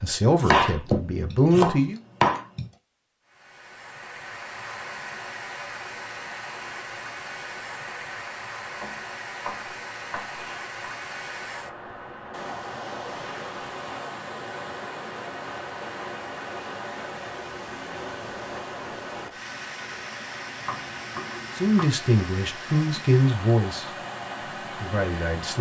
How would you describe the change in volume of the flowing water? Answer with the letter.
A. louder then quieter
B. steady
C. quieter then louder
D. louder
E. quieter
B.